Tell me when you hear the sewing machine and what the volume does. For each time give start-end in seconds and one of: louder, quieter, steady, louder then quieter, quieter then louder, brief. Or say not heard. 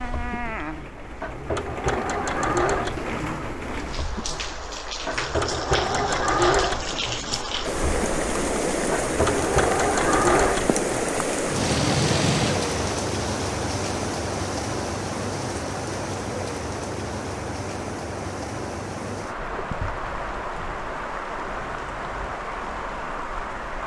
0.0-12.9 quieter then louder.